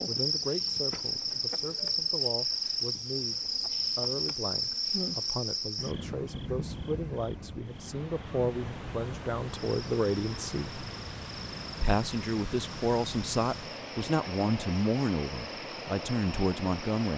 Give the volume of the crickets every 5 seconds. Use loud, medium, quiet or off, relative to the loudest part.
loud, medium, quiet, quiet.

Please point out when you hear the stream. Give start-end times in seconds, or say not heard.
7.7-17.1.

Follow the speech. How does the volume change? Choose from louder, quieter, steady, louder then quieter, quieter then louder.
louder.